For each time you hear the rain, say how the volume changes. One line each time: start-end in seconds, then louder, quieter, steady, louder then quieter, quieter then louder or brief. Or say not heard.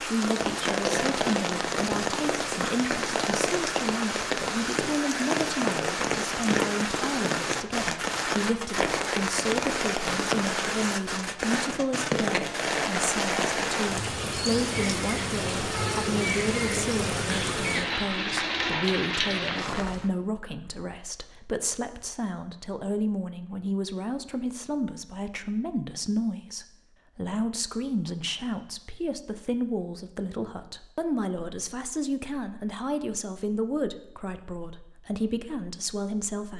0.0-20.1 steady.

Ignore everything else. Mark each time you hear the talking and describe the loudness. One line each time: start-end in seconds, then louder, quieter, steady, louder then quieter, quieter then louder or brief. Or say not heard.
0.0-36.5 steady.